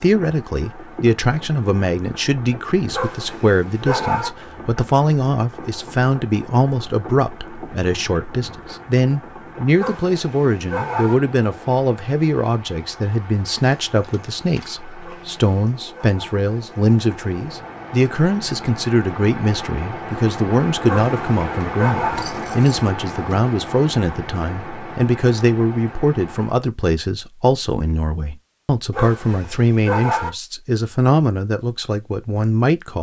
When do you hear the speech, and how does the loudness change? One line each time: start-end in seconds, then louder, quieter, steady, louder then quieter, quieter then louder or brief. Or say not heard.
0.0-32.9 steady.